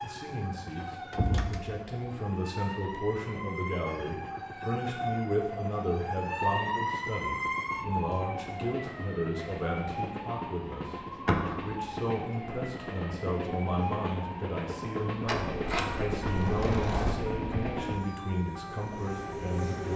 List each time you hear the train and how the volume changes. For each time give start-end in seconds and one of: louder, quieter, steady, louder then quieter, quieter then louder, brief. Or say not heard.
0.0-19.9 louder.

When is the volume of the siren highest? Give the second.
7 s.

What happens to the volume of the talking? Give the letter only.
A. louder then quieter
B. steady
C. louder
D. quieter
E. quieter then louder
B.